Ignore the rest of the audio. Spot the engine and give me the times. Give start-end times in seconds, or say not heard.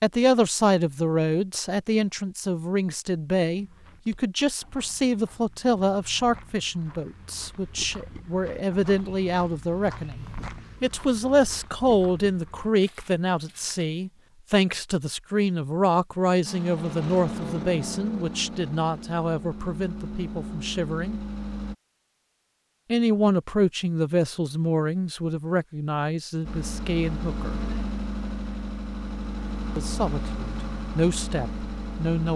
16.4-21.8, 26.4-32.3.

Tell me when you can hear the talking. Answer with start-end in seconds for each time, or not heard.
0.0-21.2, 22.9-27.6, 29.8-32.3.